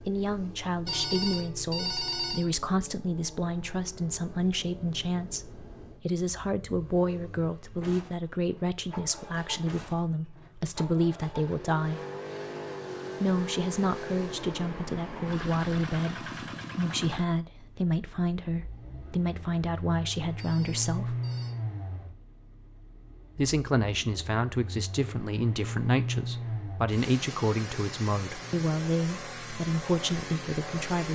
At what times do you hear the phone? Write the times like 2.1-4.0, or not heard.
0.8-2.5, 20.4-21.6.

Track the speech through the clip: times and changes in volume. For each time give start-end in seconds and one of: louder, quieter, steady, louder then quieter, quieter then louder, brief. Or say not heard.
0.1-12.0 steady
13.2-21.1 steady
23.4-31.1 steady.